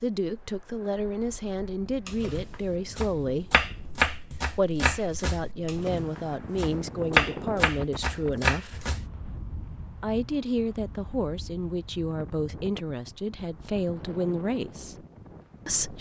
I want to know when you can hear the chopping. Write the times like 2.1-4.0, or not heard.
2.0-9.1.